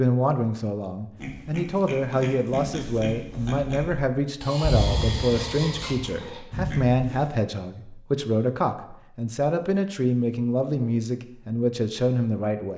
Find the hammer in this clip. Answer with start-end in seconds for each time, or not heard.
not heard.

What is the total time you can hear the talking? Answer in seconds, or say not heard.
13 s.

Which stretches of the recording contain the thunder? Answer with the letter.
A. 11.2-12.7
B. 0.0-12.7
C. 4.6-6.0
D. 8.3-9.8
C.